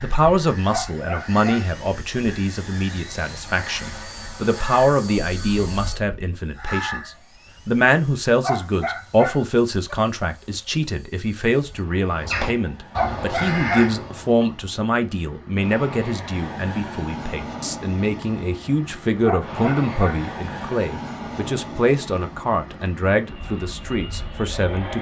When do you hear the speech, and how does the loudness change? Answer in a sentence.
You can hear the speech from 0.0 to 24.9 s, at a steady volume.